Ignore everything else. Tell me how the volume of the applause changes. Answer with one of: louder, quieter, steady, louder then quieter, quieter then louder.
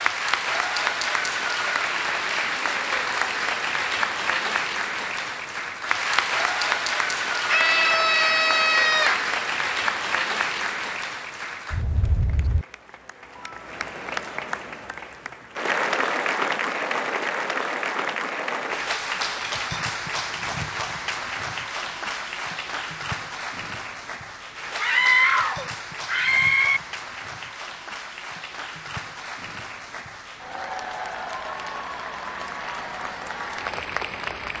quieter.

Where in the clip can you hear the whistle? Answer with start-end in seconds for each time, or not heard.
not heard.